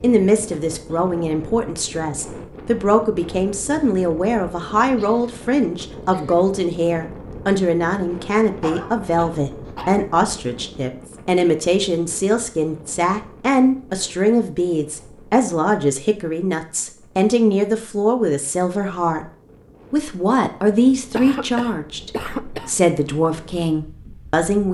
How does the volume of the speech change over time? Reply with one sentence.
The loudness of the speech stays about the same.